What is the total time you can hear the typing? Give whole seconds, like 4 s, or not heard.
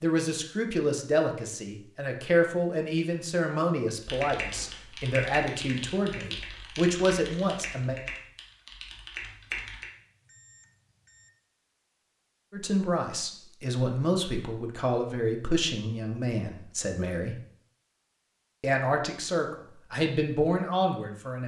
6 s.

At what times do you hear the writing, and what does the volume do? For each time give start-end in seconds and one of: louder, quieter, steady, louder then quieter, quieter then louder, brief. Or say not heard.
not heard.